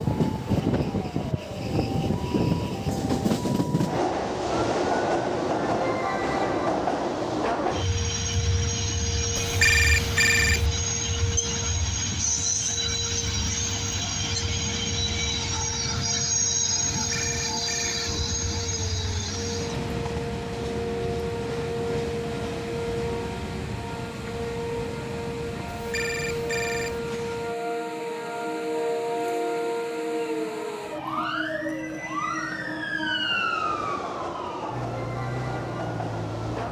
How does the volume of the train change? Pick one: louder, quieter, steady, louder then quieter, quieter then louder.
quieter.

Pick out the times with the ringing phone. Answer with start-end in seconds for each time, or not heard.
9.3-10.7, 17.1-18.0, 25.8-27.0.